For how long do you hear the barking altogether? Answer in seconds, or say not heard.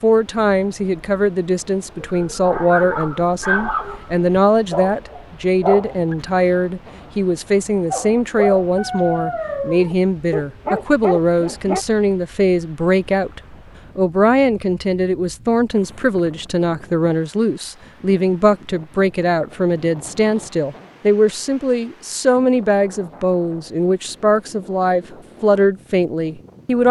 8 s.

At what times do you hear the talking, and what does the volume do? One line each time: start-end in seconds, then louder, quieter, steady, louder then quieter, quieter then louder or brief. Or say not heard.
0.0-26.8 steady.